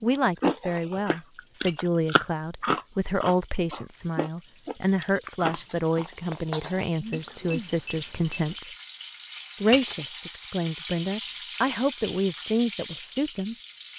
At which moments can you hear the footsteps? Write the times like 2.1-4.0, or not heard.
not heard.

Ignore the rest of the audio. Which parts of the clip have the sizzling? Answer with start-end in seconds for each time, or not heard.
0.0-13.9.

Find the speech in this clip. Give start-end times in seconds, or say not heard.
0.0-8.7, 9.6-13.6.